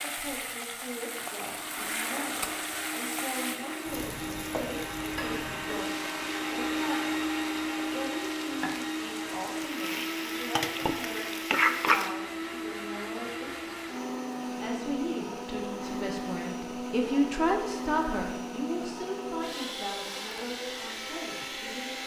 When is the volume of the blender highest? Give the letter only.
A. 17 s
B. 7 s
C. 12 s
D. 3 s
B.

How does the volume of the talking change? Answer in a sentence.
The loudness of the talking goes up, then down.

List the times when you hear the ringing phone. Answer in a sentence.
The ringing phone can't be heard in this clip.